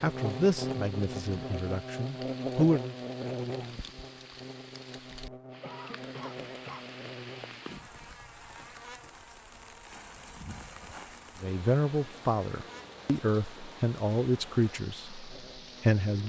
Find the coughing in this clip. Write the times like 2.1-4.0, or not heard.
5.6-6.8.